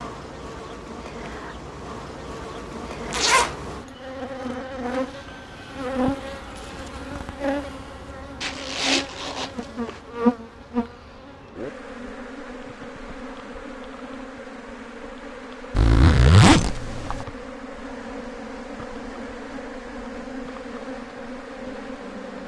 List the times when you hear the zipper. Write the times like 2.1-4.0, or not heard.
3.1-3.5, 8.4-10.0, 15.7-17.2.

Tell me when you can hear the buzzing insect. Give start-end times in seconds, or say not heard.
0.0-22.4.